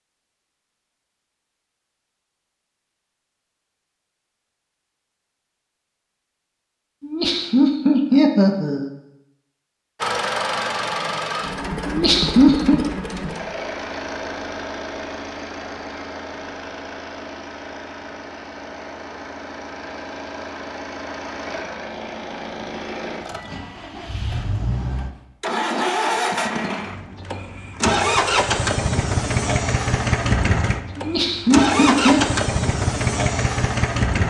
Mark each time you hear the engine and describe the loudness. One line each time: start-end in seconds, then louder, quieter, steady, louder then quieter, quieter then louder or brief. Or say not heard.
10.0-34.2 quieter then louder.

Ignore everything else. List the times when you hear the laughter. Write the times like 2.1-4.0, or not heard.
7.0-8.9, 11.8-12.8, 30.9-32.2.